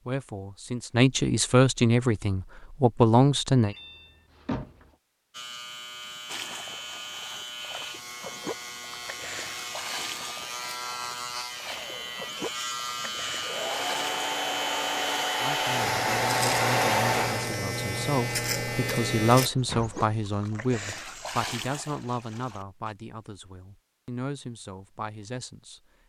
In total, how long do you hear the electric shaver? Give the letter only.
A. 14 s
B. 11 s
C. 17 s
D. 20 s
A.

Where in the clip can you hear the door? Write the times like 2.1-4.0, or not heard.
3.6-4.9, 19.4-20.0.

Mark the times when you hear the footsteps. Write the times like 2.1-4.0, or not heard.
not heard.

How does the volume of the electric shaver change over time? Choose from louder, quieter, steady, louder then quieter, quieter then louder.
louder.